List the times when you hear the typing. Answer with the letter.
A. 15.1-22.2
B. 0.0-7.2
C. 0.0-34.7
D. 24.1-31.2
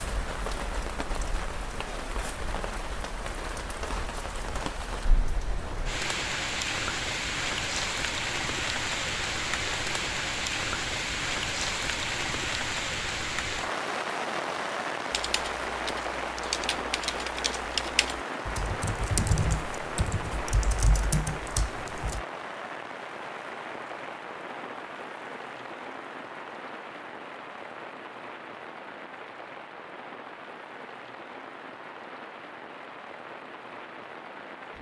A.